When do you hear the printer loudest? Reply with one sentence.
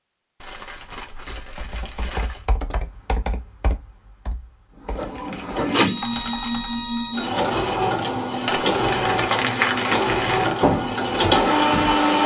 The loudest moment of the printer is at 12 seconds.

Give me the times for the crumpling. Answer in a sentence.
The crumpling can be heard from 0.4 to 2.5 s, from 5.2 to 6.5 s and from 8.4 to 10.6 s.